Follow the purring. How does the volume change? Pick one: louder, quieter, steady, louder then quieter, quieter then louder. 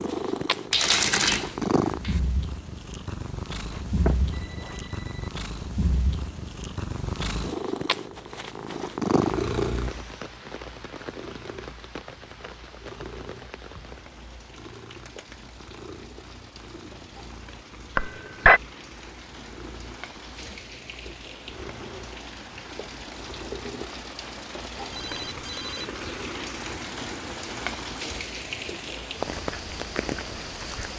quieter.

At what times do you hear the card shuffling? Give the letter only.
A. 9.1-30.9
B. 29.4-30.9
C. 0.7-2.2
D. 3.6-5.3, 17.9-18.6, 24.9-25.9
C.